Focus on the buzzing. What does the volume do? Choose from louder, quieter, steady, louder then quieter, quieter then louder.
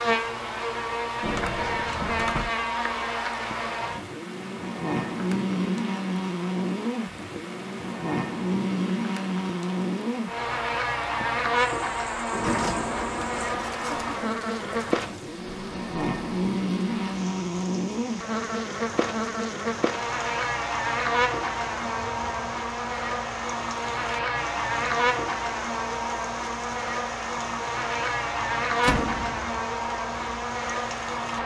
steady.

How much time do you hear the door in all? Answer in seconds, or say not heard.
4 s.